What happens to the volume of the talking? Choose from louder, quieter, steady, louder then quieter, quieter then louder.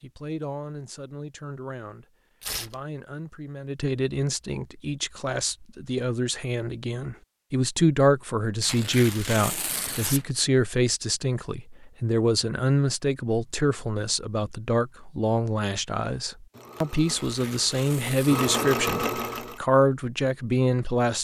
louder.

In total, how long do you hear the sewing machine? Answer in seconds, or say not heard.
3 s.